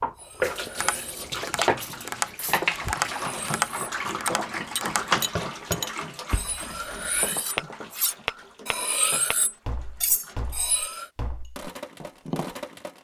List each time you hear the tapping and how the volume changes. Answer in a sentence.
The tapping can be heard from 0.8 to 12.6 s, getting quieter.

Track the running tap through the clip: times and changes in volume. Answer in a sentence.
The running tap can be heard from 0.0 to 12.9 s, getting quieter.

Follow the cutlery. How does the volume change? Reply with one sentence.
The volume of the cutlery goes up.